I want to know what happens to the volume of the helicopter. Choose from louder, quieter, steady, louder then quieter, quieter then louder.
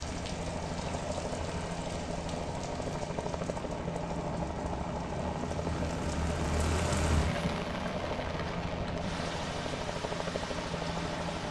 steady.